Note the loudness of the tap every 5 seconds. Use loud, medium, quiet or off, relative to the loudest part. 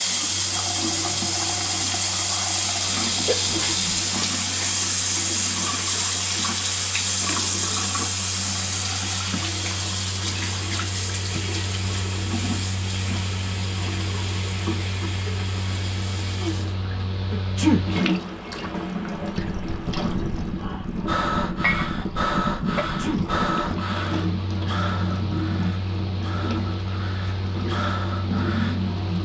loud, loud, medium, medium, medium, medium.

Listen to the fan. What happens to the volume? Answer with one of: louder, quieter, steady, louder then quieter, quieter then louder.
louder.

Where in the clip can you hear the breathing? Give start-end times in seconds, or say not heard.
20.6-28.8.